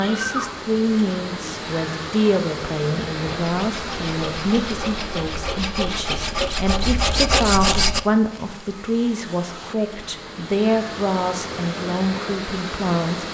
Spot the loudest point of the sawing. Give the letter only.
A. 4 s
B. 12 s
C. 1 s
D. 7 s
D.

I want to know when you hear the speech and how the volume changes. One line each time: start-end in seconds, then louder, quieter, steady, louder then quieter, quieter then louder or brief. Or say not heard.
0.0-13.2 steady.